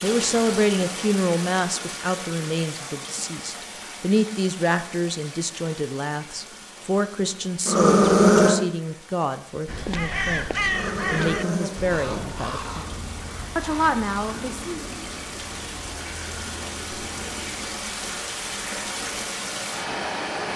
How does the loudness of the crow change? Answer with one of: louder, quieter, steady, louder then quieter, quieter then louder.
quieter.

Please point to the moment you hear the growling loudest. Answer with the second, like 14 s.
8 s.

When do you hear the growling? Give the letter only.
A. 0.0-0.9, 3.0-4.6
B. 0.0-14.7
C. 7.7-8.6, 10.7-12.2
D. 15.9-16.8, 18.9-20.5
C.